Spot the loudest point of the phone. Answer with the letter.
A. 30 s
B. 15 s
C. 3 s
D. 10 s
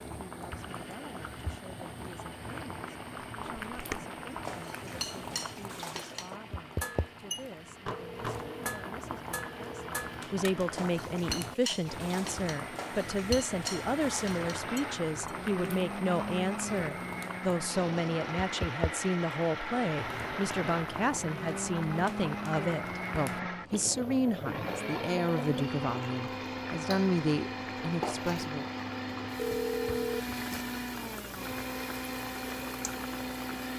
A.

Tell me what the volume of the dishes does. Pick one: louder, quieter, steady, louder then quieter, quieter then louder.
steady.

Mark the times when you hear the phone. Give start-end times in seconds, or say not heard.
7.9-9.9, 29.4-30.2.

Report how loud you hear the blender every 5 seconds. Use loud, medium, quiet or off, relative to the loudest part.
quiet, quiet, medium, loud, loud, loud, loud.